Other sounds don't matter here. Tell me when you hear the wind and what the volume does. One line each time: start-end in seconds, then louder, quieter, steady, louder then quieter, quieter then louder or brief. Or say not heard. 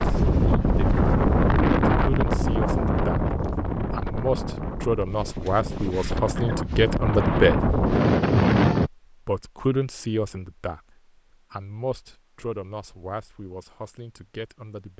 0.0-8.9 quieter then louder.